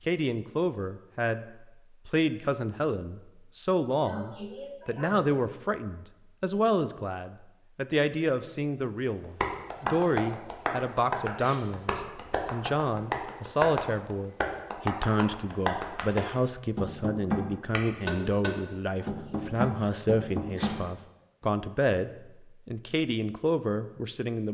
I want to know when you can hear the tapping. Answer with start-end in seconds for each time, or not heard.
9.2-20.8.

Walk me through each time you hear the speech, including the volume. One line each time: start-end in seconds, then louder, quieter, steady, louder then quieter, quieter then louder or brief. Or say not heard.
0.1-24.4 steady.